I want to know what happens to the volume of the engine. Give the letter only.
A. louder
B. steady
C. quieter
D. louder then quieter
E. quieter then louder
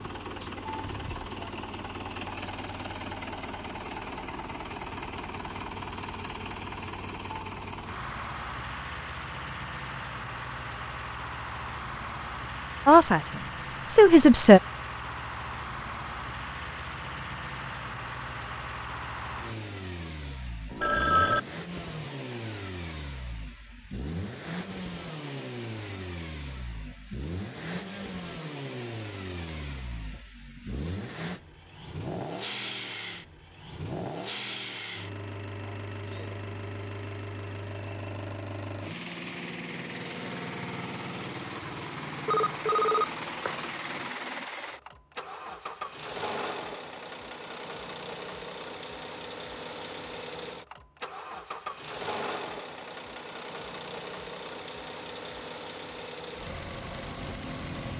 B.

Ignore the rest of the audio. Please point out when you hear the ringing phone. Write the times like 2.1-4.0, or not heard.
20.7-21.4, 42.2-43.7.